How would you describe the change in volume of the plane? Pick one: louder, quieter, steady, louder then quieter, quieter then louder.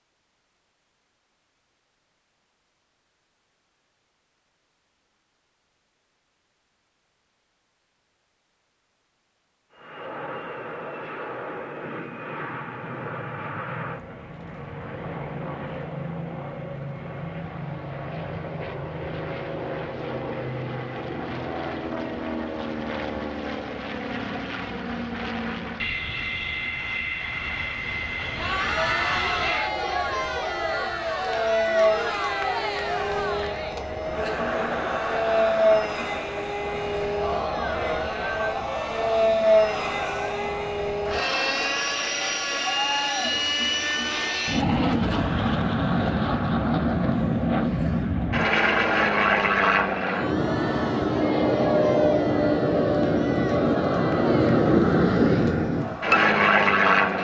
louder.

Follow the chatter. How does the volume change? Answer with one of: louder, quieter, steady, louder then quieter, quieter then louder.
quieter.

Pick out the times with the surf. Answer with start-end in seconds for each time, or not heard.
not heard.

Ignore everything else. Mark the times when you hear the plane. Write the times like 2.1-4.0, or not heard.
9.7-57.1.